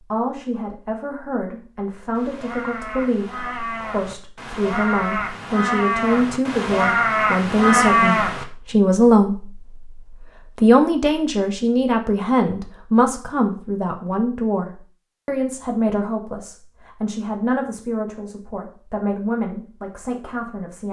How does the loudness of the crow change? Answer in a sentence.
The volume of the crow goes up.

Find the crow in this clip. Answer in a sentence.
The crow can be heard from 1.9 to 8.4 s.